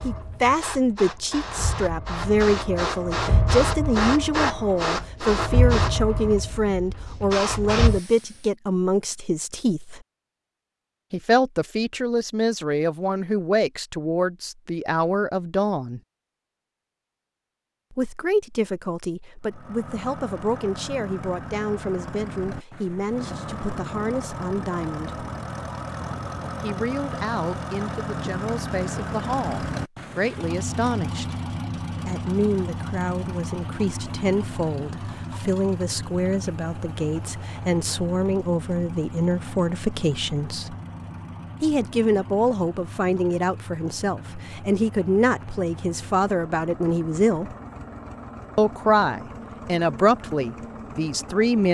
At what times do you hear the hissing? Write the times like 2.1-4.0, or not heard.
0.0-8.5.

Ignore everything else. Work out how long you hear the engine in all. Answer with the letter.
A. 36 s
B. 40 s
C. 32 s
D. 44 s
C.